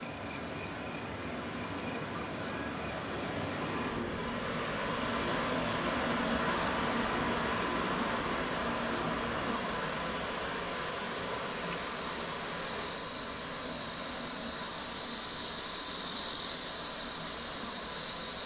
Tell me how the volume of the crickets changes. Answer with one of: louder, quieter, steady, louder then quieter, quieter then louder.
quieter then louder.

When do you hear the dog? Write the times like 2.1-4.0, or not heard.
not heard.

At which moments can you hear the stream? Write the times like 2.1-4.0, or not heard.
0.0-18.4.